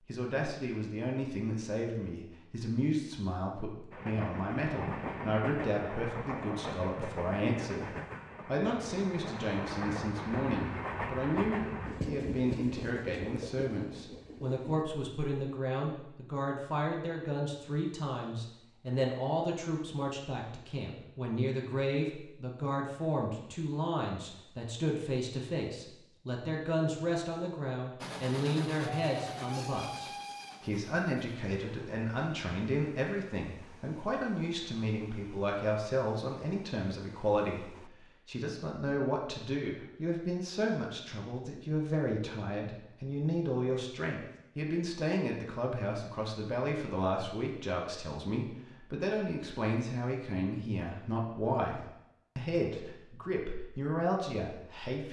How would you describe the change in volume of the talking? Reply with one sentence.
The volume of the talking stays about the same.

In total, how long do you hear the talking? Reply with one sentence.
You can hear the talking for 55 seconds altogether.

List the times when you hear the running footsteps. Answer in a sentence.
You can't hear the running footsteps here.